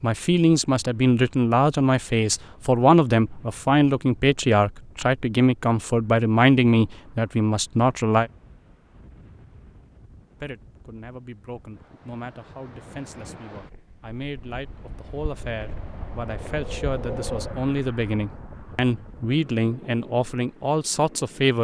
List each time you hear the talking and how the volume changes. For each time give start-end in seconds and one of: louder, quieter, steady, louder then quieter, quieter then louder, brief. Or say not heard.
0.0-8.3 steady
10.4-21.5 louder.